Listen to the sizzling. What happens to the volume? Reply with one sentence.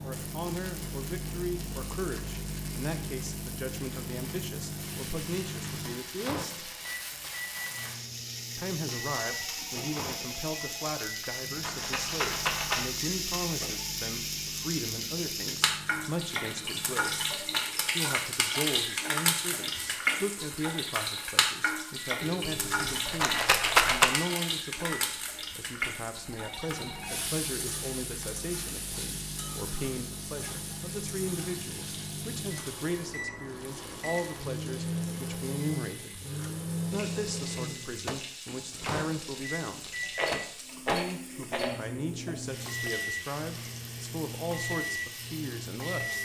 The volume of the sizzling goes up, then down.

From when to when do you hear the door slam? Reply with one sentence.
The door slam can't be heard in this clip.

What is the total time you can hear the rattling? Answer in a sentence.
You can hear the rattling for 5 seconds altogether.